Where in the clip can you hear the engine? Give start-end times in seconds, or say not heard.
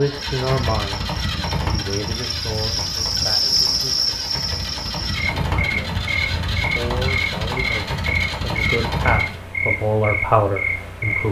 0.0-9.4.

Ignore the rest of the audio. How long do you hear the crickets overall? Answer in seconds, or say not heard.
11 s.